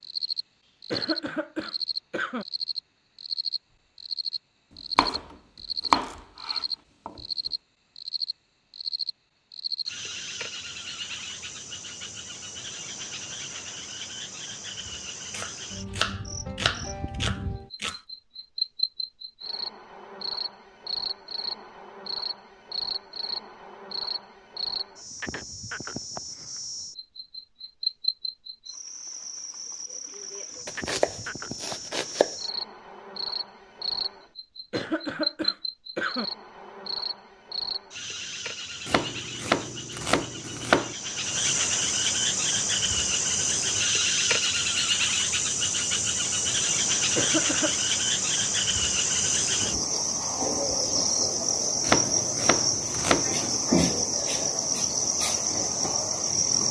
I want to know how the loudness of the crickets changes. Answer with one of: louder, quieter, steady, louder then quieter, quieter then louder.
louder.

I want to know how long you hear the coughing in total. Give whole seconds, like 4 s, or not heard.
4 s.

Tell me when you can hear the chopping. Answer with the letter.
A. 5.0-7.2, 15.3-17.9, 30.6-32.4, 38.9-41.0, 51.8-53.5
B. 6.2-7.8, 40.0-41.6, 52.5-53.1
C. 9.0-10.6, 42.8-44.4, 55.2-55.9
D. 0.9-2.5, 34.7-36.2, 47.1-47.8
A.